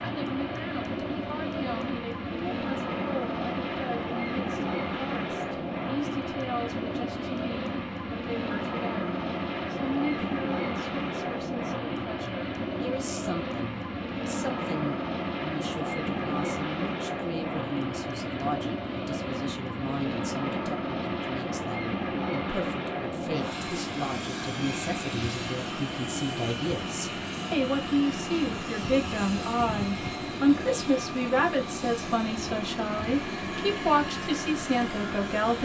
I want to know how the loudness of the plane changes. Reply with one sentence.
The loudness of the plane stays about the same.